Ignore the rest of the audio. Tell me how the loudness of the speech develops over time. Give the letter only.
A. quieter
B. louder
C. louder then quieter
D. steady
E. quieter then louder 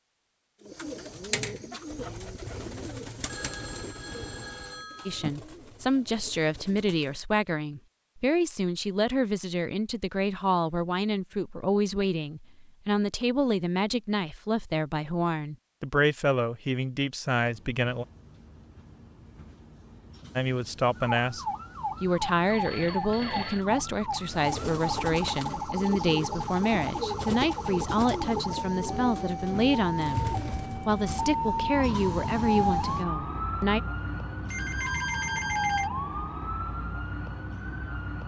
D.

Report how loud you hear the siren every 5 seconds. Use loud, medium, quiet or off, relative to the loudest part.
off, off, off, off, loud, loud, loud, loud.